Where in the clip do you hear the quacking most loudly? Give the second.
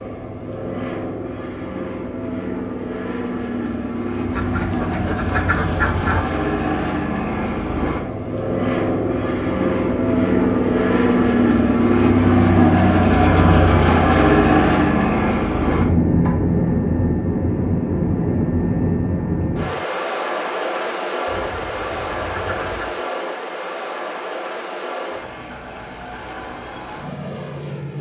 6 s.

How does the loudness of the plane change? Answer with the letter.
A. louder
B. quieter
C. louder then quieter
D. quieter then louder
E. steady
C.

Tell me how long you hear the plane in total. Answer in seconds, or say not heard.
28 s.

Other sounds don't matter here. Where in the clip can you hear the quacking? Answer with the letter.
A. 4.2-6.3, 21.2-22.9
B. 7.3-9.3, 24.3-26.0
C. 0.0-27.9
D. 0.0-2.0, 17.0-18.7
A.